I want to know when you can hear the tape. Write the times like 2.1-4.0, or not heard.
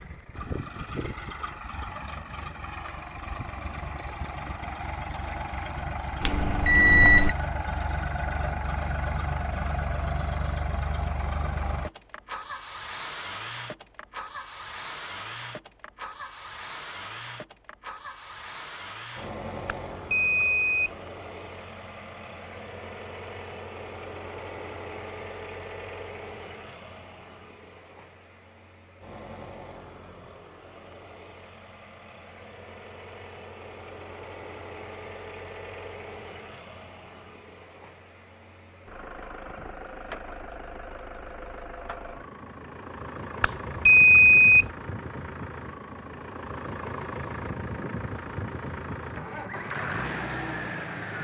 not heard.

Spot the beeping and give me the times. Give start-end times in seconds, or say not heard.
6.2-7.3, 19.6-20.9, 43.4-44.6.